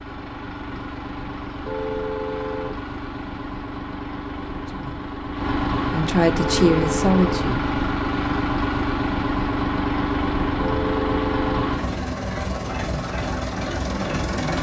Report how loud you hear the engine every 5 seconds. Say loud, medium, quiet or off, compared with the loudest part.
medium, loud, loud.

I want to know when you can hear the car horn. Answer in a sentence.
The car horn can be heard from 1.6 to 2.8 s, from 6.3 to 7.5 s and from 10.6 to 11.6 s.